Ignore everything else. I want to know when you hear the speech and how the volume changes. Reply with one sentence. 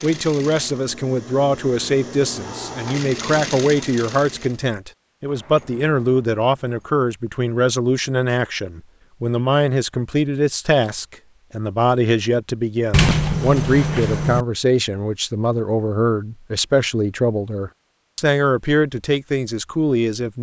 The speech can be heard from 0.0 to 20.3 s, at a steady volume.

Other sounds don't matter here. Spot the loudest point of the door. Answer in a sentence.
The loudest moment of the door is at 13 seconds.